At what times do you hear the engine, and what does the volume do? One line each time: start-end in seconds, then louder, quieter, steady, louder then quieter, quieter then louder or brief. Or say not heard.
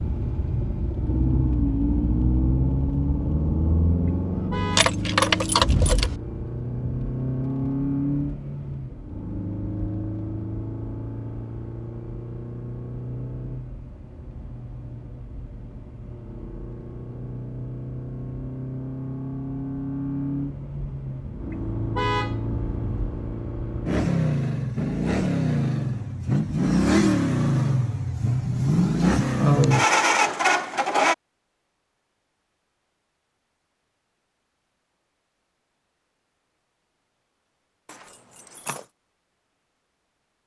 0.0-31.1 quieter then louder.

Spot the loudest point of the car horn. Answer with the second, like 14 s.
22 s.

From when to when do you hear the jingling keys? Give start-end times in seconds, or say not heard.
4.7-6.2, 37.9-38.9.